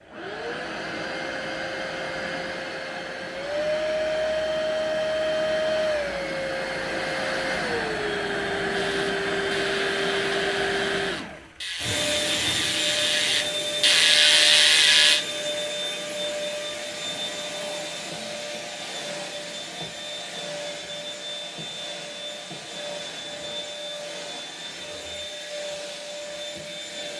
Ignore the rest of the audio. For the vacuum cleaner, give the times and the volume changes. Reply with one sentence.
You can hear the vacuum cleaner from 0.0 to 27.1 s, getting quieter.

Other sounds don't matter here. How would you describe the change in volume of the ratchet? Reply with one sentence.
The volume of the ratchet goes up.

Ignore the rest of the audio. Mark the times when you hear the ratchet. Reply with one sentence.
The ratchet can be heard from 8.7 to 15.2 s.